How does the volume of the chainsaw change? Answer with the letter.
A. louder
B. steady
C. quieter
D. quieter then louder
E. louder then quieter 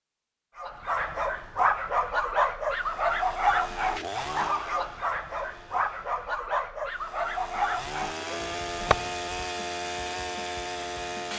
D.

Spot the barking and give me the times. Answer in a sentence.
You can hear the barking from 0.6 to 9.3 s.